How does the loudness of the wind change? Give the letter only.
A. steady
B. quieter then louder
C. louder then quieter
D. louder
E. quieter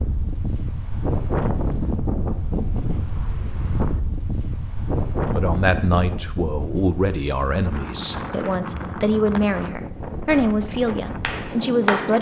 E.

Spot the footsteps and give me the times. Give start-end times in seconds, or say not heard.
not heard.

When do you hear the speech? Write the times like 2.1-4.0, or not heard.
5.3-12.1.